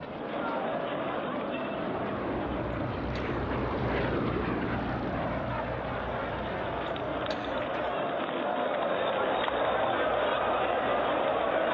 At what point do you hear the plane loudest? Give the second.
4 s.